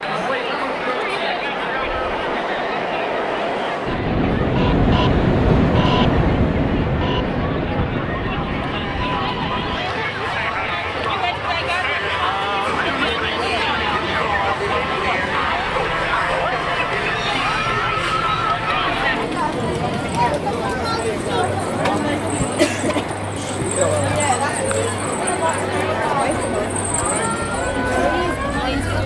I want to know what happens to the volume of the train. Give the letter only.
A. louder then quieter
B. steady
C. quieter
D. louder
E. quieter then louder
C.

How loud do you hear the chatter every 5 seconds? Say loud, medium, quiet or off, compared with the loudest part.
medium, medium, loud, loud, loud, loud.